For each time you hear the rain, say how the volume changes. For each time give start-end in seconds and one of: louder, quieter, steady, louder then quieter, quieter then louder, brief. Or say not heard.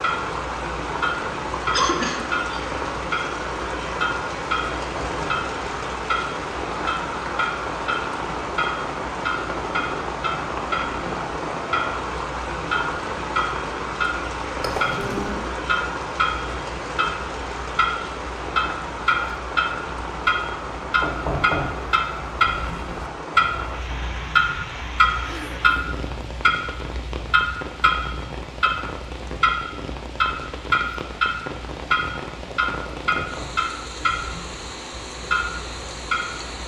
0.0-36.6 quieter.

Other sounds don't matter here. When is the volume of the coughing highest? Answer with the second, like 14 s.
2 s.